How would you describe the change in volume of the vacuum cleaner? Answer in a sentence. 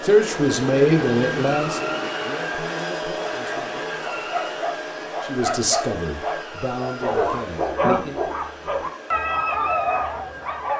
The volume of the vacuum cleaner goes down.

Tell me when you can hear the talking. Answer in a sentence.
You can hear the talking from 0.0 to 4.0 s and from 5.2 to 8.2 s.